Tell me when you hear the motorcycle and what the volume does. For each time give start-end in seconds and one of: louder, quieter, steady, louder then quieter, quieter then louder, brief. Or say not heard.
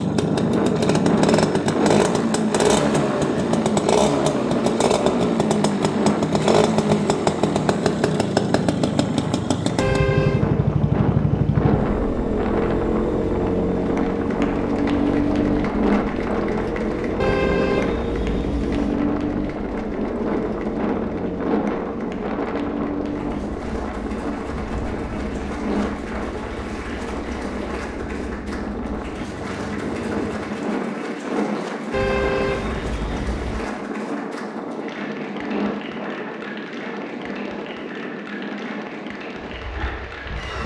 0.0-30.6 quieter.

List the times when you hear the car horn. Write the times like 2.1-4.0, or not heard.
9.8-10.4, 17.2-19.0, 31.9-33.7.